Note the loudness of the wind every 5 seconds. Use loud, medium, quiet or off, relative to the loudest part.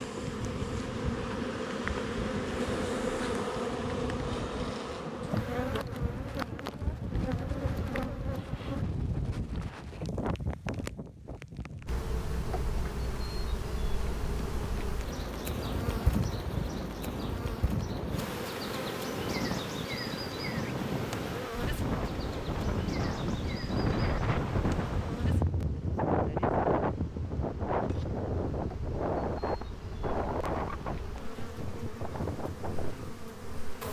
medium, medium, medium, medium, loud, loud, medium.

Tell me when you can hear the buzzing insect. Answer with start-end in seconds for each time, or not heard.
0.0-8.8, 11.8-33.8.